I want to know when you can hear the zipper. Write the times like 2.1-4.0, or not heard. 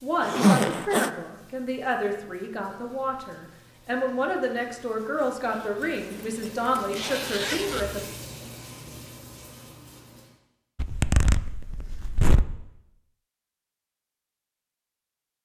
0.2-1.1, 5.8-7.8, 10.8-12.4.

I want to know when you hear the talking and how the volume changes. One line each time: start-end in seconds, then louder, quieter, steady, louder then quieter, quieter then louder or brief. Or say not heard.
0.0-8.1 steady.